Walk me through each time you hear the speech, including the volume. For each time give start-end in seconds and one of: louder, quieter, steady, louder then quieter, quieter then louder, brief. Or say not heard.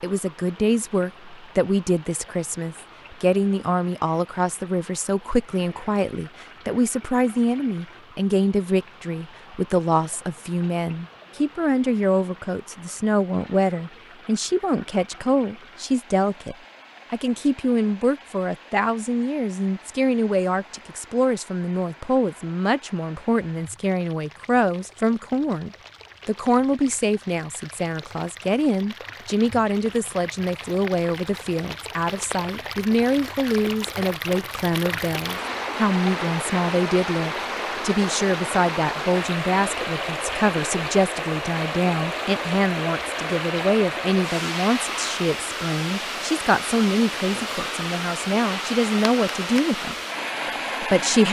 0.0-50.0 steady
50.7-51.2 brief.